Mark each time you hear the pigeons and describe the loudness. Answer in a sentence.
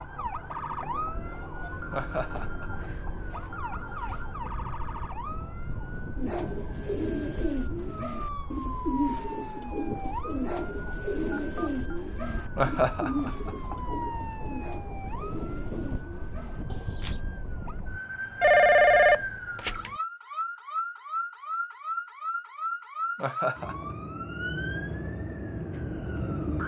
The pigeons can be heard from 6.2 to 17.2 s, getting quieter.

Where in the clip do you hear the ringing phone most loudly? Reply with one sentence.
The volume of the ringing phone peaks at 19 seconds.